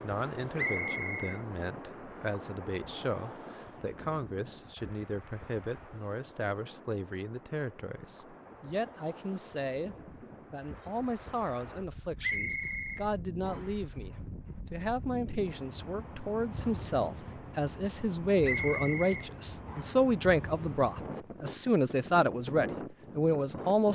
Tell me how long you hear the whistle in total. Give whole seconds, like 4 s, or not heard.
4 s.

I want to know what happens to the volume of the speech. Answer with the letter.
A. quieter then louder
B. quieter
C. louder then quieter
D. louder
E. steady
D.